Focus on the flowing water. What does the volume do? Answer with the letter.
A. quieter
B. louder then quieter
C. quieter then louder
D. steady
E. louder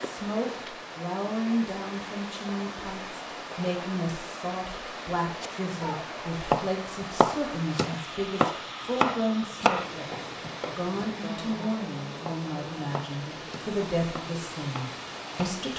D.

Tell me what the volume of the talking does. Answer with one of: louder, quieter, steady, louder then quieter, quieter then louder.
steady.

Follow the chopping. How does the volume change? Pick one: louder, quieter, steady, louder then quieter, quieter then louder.
quieter.